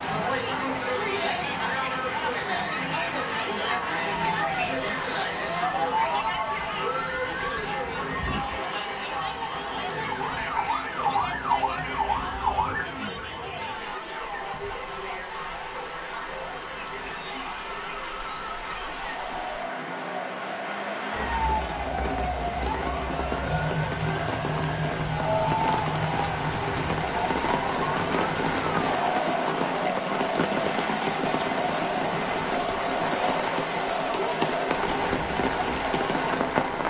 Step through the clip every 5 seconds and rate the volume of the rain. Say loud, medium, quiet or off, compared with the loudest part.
medium, quiet, quiet, medium, medium, loud, loud, loud.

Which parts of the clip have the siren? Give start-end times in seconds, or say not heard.
4.2-12.8, 21.1-29.1.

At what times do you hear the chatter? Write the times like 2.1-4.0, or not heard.
0.0-36.8.